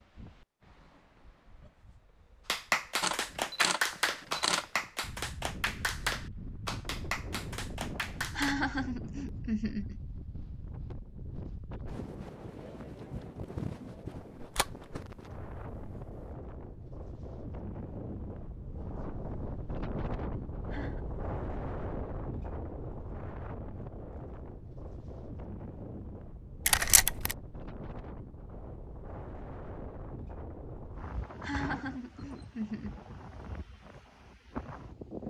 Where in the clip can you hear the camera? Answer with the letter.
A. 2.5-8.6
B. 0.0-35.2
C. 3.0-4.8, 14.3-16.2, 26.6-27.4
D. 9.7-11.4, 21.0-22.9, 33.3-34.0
C.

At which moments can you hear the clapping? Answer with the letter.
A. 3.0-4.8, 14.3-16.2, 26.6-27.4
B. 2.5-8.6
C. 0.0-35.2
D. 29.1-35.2
B.